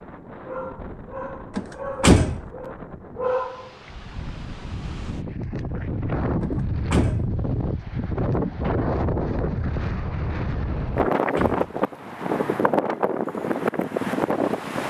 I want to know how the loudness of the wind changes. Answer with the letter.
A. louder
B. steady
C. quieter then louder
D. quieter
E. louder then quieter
A.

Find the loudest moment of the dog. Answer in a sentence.
The loudest moment of the dog is at 3 seconds.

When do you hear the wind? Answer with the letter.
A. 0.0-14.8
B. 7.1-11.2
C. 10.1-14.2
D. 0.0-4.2
A.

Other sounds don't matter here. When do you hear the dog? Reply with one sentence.
The dog can be heard from 0.0 to 4.2 s.